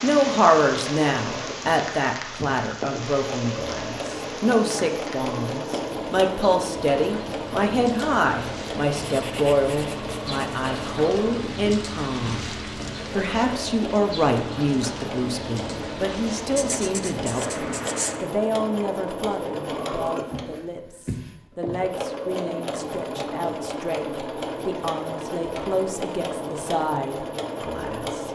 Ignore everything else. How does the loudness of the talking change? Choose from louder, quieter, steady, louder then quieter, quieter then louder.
quieter.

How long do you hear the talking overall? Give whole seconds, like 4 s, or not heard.
28 s.